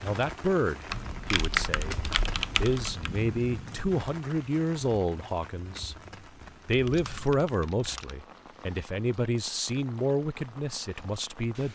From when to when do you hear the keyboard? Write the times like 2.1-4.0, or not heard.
0.8-3.1, 6.7-8.2.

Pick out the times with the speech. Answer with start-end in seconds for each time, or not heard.
0.0-2.0, 2.6-6.0, 6.7-11.7.